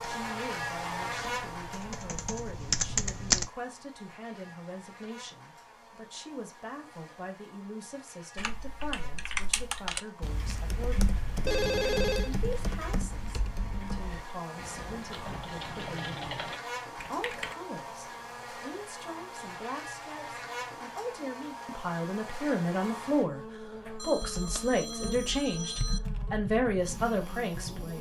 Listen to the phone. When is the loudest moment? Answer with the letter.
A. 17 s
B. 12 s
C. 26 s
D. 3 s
B.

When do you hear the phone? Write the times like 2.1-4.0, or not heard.
11.4-12.3, 24.0-26.0.